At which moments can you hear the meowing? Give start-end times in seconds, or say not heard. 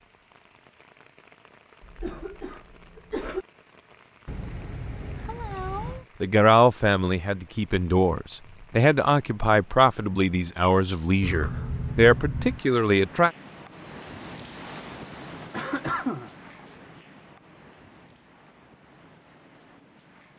4.2-6.0, 11.2-12.7.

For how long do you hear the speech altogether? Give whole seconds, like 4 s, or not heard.
7 s.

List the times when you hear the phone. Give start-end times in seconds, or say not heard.
not heard.